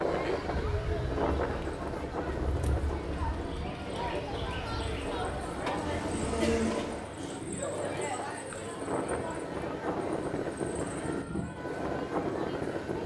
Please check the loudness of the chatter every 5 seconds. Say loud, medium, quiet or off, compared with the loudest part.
loud, loud, medium.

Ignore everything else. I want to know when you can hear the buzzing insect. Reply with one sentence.
The buzzing insect can be heard from 0.2 to 7.0 s.